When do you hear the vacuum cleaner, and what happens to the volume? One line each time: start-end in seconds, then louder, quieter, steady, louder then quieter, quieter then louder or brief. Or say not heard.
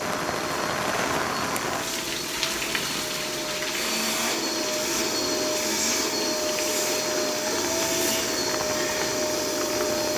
0.0-10.1 louder.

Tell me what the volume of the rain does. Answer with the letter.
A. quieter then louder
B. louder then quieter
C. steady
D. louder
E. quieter
E.